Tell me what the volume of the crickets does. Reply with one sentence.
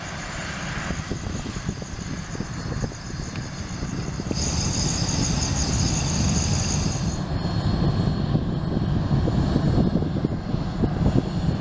The loudness of the crickets goes up.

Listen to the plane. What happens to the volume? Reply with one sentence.
The volume of the plane goes up.